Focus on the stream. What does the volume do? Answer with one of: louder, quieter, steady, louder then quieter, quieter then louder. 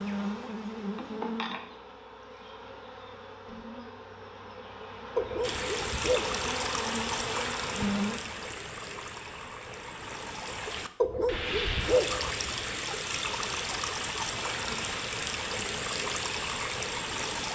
quieter then louder.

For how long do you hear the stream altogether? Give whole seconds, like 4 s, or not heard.
12 s.